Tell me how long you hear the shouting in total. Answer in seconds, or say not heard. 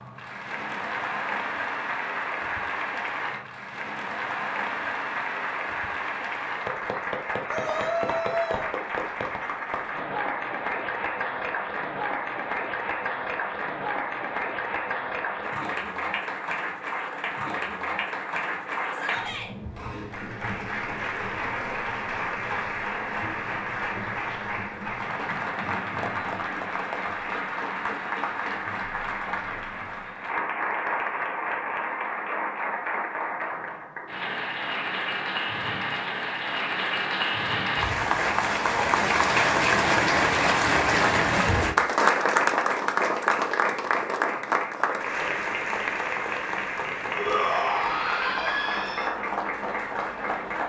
4 s.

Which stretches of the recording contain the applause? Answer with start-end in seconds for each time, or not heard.
0.0-50.6.